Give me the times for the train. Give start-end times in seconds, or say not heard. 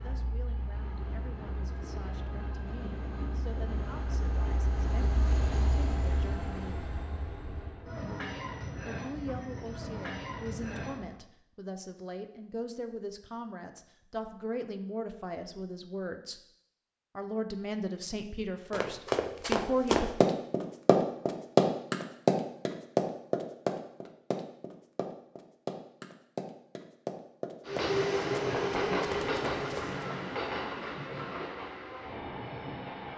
0.0-11.2, 27.6-33.1.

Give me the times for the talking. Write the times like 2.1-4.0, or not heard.
0.0-6.9, 8.8-16.4, 17.1-20.1.